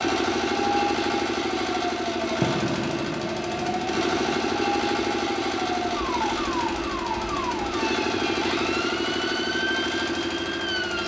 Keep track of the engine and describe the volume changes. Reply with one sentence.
The volume of the engine stays about the same.